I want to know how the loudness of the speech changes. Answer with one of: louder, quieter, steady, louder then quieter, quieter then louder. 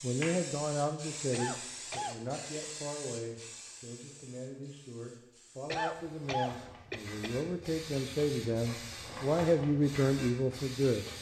quieter then louder.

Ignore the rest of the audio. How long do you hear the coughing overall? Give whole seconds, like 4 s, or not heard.
3 s.